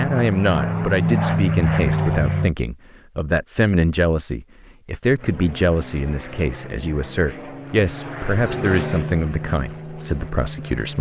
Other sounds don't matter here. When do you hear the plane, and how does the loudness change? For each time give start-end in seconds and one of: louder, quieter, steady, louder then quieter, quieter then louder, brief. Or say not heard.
0.0-2.5 brief
5.2-10.9 louder then quieter.